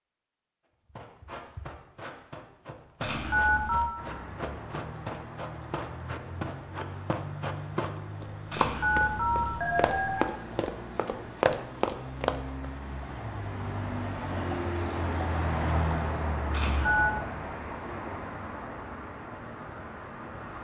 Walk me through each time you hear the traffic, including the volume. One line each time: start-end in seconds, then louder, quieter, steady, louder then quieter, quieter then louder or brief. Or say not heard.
4.0-20.6 louder then quieter.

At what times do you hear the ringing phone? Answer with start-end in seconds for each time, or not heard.
3.0-3.9, 8.5-10.3, 16.5-17.1.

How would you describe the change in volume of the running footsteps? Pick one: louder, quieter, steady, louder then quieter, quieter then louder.
louder.